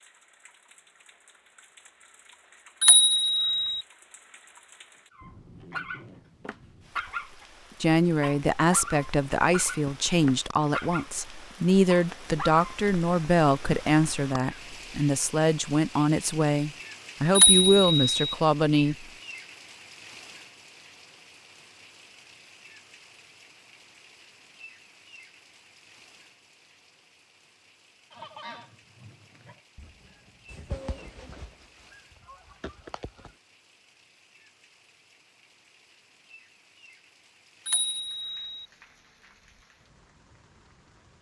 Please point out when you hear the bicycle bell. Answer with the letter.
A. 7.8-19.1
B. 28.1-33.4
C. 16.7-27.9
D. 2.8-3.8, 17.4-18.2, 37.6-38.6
D.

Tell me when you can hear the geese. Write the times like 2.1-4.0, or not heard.
28.1-33.4.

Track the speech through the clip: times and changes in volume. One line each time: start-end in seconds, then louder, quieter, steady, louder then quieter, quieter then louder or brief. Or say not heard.
7.8-19.1 steady.